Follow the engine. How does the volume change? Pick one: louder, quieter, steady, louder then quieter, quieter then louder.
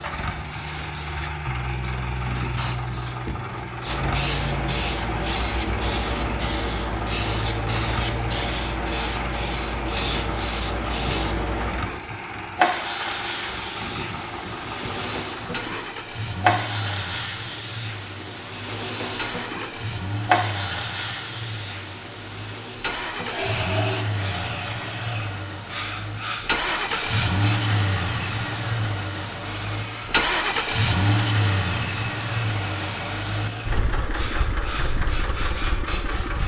louder.